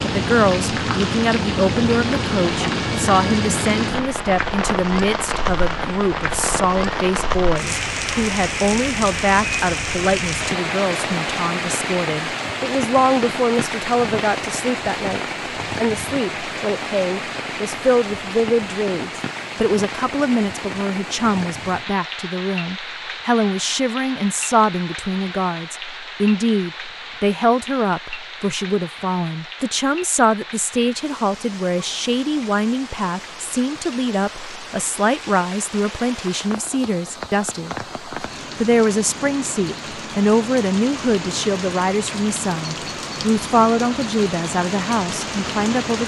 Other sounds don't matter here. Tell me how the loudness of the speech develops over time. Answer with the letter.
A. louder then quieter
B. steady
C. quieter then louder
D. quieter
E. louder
B.